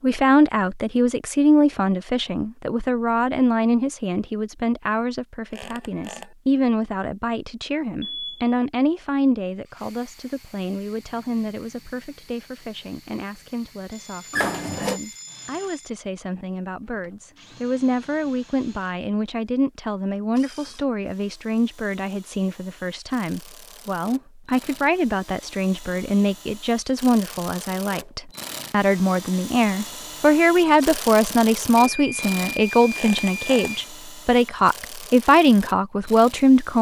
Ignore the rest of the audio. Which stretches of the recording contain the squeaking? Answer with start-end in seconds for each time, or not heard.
5.5-6.3, 14.3-15.0, 33.0-33.7.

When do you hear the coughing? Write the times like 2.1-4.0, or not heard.
not heard.